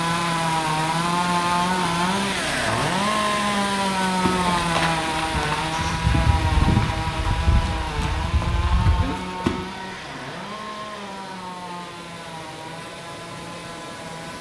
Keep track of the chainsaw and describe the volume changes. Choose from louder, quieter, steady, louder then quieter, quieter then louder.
quieter.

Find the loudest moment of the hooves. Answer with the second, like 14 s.
7 s.